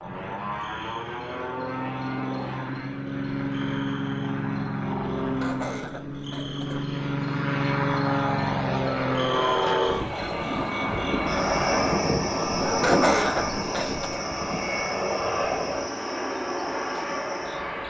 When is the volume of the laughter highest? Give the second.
13 s.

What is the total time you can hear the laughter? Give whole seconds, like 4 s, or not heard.
3 s.